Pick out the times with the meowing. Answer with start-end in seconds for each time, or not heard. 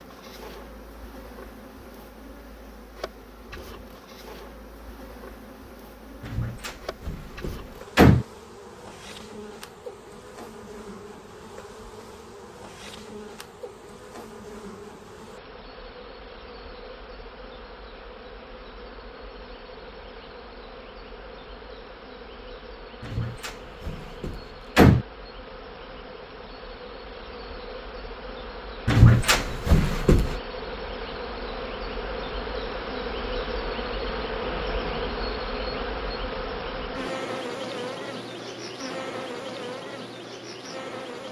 not heard.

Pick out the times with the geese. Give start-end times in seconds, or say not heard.
not heard.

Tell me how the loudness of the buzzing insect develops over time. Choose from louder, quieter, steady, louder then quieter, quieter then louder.
louder.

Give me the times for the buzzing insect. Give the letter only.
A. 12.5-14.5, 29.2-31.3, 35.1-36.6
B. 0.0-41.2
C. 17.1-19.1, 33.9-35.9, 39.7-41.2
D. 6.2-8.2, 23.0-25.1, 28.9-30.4
B.